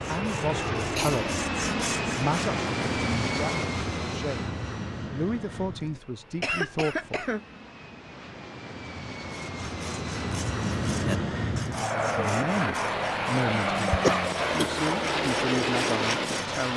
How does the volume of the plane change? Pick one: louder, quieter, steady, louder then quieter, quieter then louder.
quieter then louder.